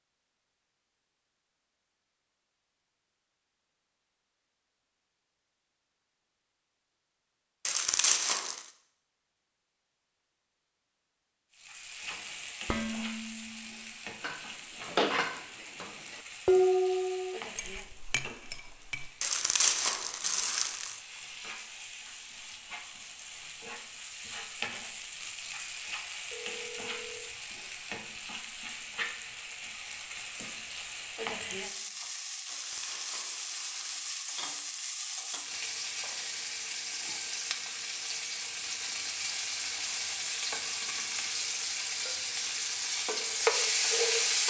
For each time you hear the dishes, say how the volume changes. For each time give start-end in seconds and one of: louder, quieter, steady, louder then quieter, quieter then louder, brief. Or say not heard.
12.1-19.1 louder then quieter.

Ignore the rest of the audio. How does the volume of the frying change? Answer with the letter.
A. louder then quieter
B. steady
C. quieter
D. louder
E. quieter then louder
D.